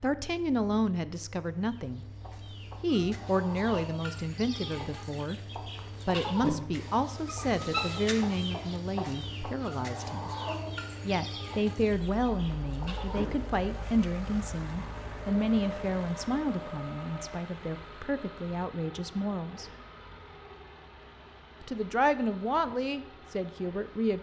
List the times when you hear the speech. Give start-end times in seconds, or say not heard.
0.0-5.4, 6.0-10.3, 11.1-19.7, 21.6-24.1.